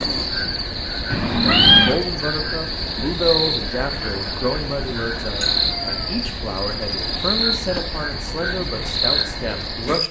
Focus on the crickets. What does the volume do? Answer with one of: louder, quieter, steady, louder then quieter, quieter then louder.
steady.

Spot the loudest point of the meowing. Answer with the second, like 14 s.
2 s.